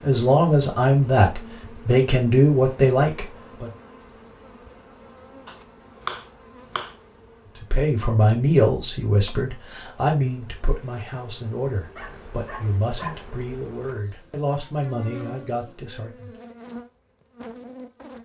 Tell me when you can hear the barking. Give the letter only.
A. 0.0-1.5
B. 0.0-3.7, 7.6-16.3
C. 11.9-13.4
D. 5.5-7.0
C.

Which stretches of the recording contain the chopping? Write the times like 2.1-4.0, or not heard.
5.5-7.0.